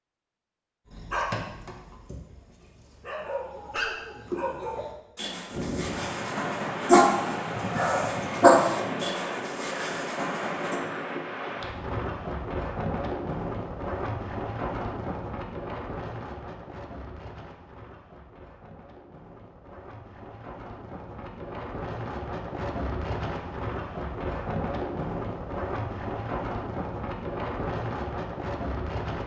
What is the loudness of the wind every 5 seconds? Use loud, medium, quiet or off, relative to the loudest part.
off, loud, loud, medium, loud, loud.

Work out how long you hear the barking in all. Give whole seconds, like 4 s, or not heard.
10 s.